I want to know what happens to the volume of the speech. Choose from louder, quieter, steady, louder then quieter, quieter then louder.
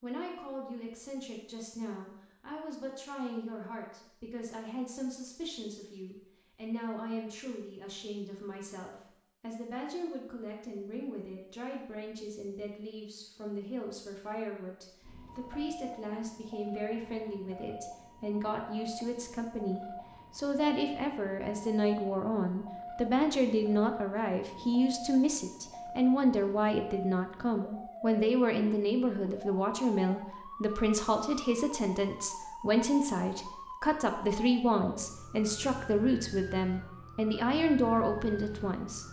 louder.